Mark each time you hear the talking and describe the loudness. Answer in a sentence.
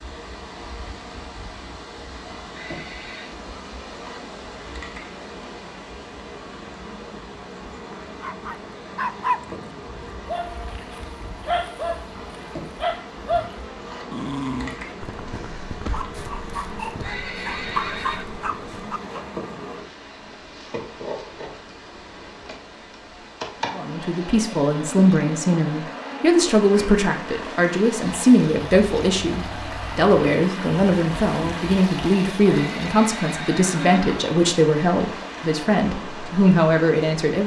The talking can be heard from 23.7 to 37.4 s, at a steady volume.